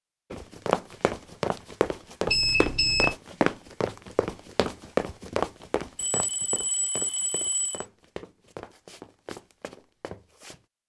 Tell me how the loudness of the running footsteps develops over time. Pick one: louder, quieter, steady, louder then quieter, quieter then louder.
quieter.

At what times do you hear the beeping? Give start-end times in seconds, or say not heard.
2.2-3.1, 6.0-7.8.